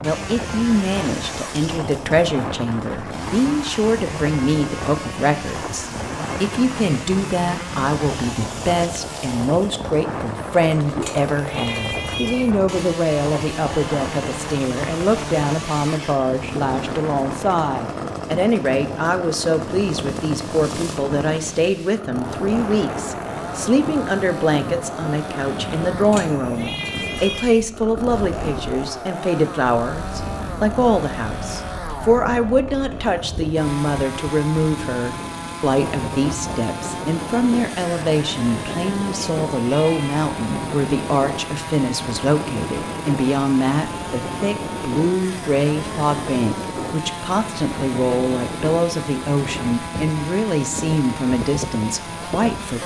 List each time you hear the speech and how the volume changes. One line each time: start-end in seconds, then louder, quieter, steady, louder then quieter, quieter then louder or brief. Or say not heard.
0.0-52.8 steady.